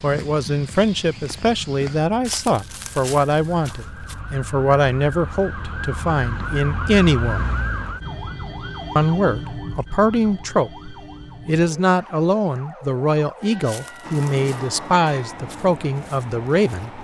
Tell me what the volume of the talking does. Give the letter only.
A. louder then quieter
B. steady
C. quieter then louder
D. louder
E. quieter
B.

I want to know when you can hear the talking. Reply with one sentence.
You can hear the talking from 0.0 to 7.5 s and from 8.9 to 16.9 s.